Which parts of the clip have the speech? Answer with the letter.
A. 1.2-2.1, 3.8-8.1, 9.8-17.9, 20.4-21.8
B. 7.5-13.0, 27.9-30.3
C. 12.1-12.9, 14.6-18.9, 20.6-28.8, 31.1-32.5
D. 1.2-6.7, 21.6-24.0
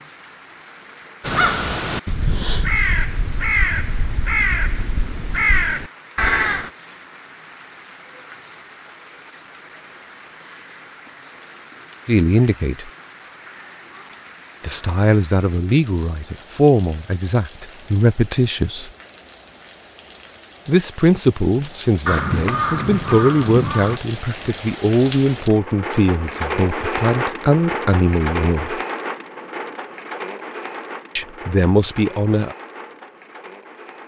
C.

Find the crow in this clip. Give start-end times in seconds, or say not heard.
1.2-6.7, 21.6-24.0.